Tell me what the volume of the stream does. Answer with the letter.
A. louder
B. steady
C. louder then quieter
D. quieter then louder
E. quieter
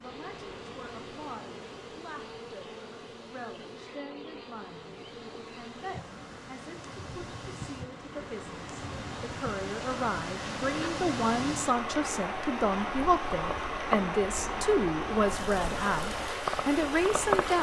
A.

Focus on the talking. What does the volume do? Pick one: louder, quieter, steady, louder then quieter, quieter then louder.
louder.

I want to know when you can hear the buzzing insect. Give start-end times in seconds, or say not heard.
0.0-17.5.